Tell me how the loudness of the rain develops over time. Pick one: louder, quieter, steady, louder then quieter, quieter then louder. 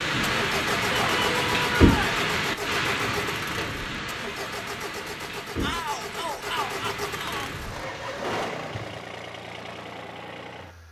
quieter.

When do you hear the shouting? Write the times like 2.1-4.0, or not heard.
0.9-2.0, 5.6-7.5.